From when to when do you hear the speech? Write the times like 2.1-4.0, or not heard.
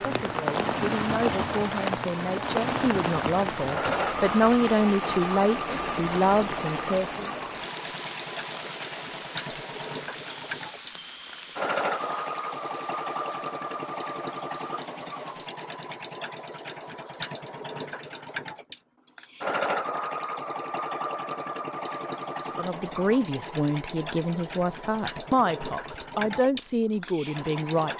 0.0-7.3, 22.6-27.9.